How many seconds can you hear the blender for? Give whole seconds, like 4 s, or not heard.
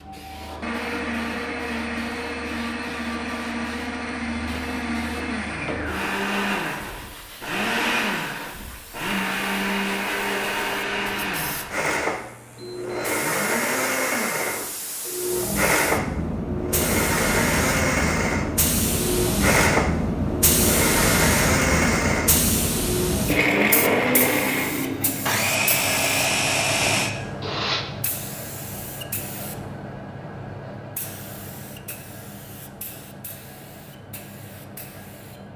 28 s.